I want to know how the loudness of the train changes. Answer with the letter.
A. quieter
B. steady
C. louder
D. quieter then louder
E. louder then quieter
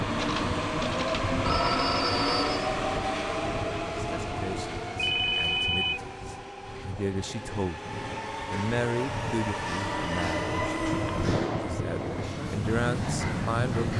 D.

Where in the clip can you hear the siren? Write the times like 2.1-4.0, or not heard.
not heard.